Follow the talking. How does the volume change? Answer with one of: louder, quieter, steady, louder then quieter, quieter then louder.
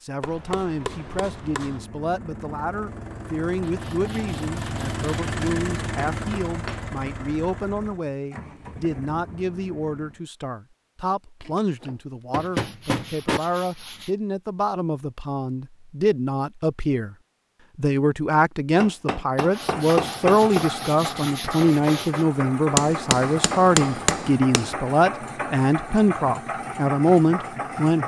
louder.